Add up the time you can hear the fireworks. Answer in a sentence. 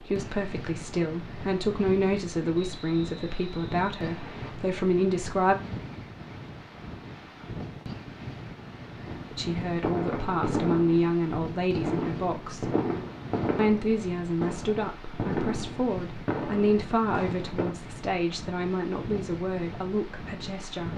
You can hear the fireworks for 9 seconds altogether.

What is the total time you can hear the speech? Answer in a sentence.
You can hear the speech for 16 seconds altogether.